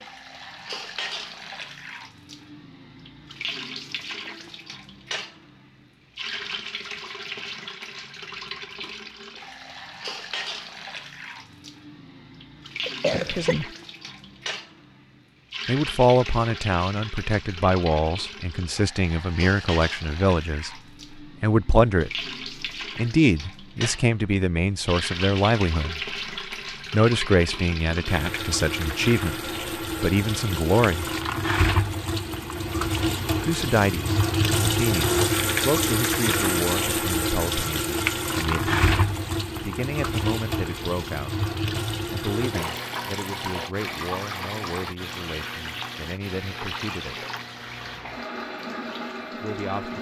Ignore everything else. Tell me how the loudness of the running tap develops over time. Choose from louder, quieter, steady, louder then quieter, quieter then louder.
louder then quieter.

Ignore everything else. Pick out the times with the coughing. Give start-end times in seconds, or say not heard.
12.8-13.6.